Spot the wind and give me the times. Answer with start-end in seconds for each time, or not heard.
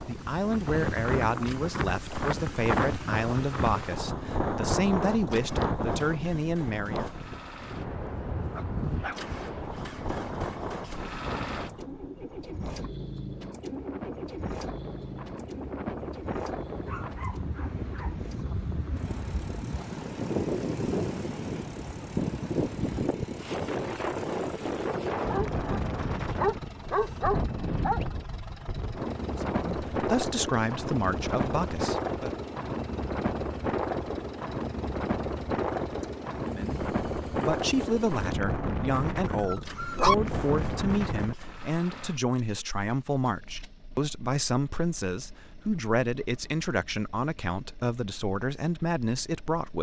0.0-41.4.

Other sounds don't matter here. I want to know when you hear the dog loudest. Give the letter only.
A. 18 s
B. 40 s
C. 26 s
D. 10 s
B.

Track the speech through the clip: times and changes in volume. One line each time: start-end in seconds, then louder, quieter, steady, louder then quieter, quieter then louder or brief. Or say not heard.
0.0-7.1 steady
29.4-32.3 brief
36.5-49.7 steady.